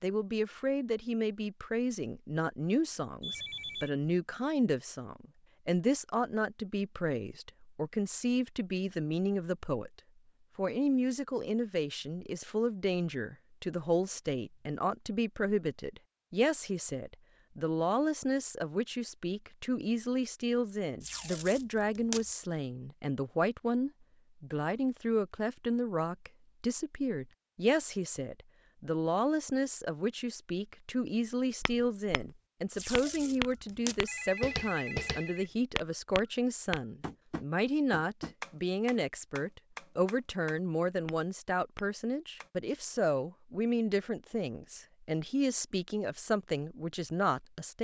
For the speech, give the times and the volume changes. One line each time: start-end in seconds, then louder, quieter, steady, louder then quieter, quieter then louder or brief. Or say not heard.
0.0-9.9 steady
10.6-47.7 steady.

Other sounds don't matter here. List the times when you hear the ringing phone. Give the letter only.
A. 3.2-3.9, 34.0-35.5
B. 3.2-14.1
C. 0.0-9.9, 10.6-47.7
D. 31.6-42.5
A.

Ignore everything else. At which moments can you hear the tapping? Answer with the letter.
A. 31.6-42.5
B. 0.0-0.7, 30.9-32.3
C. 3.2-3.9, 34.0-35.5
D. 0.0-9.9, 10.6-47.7
A.